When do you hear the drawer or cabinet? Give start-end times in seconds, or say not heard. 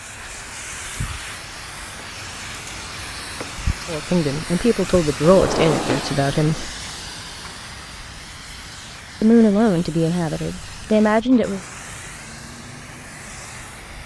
5.2-6.7.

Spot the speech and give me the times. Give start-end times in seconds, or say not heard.
3.9-6.7, 9.2-11.6.